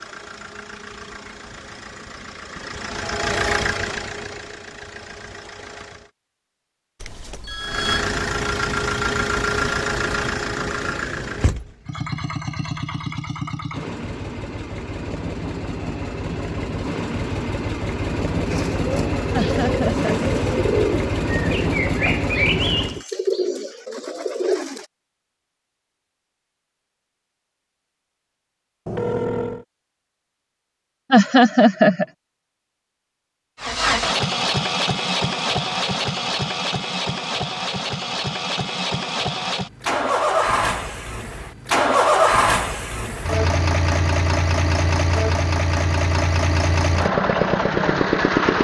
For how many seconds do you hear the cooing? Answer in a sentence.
The cooing can be heard for 6 seconds in total.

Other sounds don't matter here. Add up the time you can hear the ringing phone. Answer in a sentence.
The ringing phone can be heard for 2 seconds in total.